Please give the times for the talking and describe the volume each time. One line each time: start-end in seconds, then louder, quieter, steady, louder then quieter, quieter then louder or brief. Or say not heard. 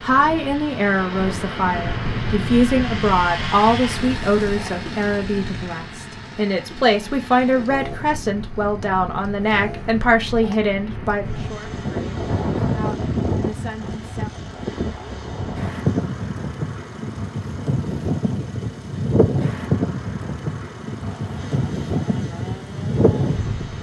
0.0-14.3 quieter.